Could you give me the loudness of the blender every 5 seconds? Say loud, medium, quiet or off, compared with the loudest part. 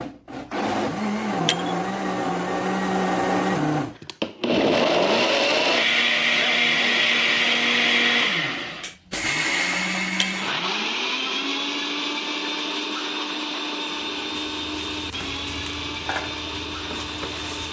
loud, loud, medium, medium.